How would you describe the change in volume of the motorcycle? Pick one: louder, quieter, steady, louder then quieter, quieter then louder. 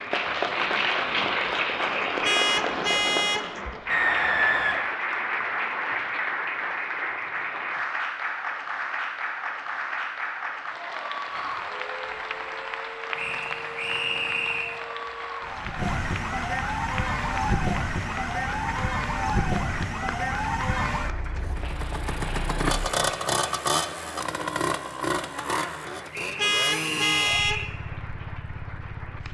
quieter.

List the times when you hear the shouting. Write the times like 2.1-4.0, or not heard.
not heard.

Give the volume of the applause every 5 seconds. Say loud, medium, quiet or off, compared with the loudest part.
loud, loud, medium, medium, quiet, quiet.